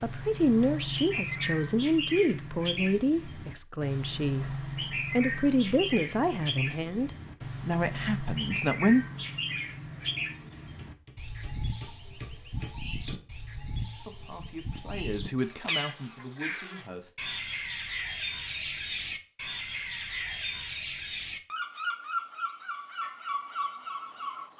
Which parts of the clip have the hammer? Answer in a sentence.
The hammer can be heard from 10.5 to 13.2 s.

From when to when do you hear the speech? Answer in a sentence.
You can hear the speech from 0.0 to 9.1 s and from 14.0 to 17.1 s.